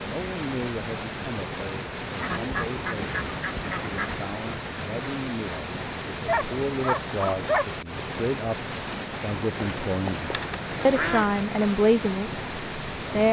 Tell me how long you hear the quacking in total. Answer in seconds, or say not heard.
4 s.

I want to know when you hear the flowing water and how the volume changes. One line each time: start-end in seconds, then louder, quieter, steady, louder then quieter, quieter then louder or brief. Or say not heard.
0.0-13.2 steady.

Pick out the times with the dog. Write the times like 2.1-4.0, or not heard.
6.2-7.7.